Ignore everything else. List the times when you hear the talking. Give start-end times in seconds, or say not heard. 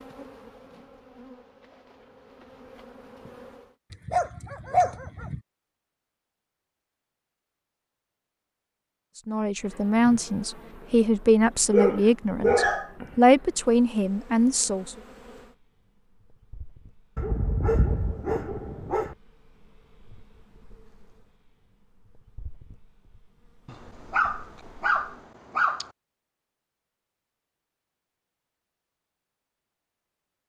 9.2-14.9.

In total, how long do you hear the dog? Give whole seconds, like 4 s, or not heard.
7 s.